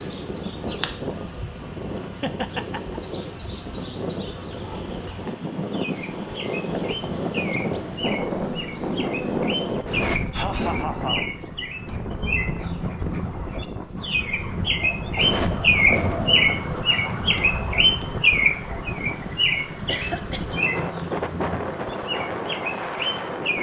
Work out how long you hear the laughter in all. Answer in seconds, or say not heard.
3 s.